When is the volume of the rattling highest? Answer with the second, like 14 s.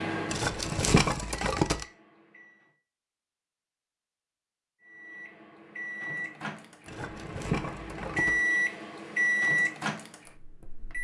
1 s.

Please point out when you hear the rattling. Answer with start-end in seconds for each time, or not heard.
0.3-1.9, 6.8-8.4.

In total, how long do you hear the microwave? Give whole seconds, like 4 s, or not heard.
9 s.